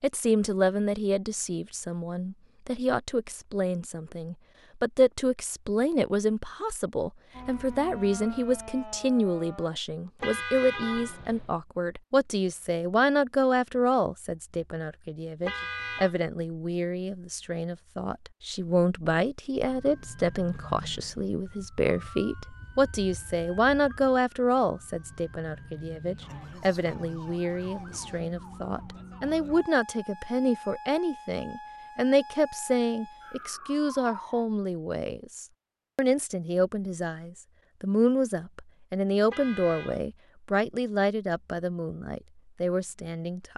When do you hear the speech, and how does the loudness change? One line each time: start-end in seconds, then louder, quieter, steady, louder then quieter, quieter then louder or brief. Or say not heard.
0.0-43.5 steady.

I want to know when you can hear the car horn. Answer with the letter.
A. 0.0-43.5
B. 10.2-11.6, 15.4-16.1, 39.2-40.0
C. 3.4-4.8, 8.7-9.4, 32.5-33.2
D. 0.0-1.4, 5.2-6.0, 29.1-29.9
B.